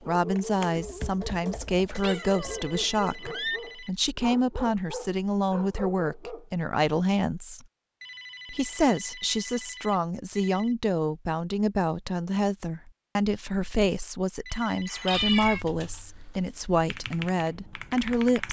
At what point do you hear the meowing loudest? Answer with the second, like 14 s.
15 s.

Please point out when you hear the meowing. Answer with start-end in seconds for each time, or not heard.
2.0-3.6, 14.8-15.7.